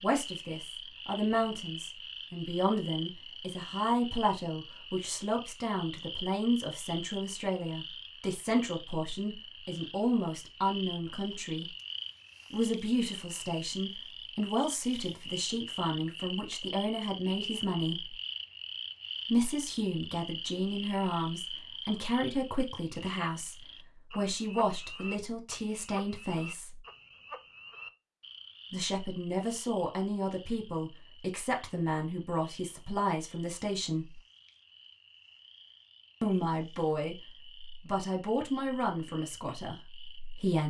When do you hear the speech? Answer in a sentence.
The speech can be heard from 0.0 to 11.7 s, from 12.5 to 18.1 s, from 19.3 to 23.6 s, from 24.1 to 26.8 s, from 28.7 to 34.2 s and from 36.2 to 40.6 s.